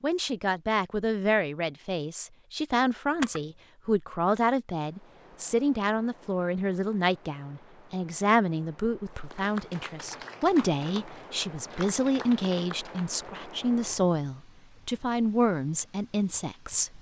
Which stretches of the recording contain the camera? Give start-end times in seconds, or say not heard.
3.1-3.8.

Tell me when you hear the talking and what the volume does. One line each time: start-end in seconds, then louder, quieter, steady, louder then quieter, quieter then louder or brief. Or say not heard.
0.0-16.9 steady.